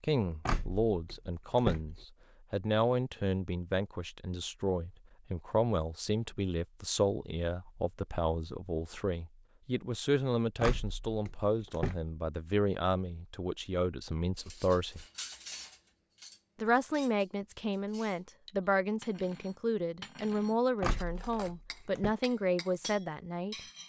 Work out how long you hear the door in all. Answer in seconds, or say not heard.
4 s.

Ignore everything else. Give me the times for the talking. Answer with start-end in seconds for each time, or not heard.
0.0-15.1, 16.6-23.6.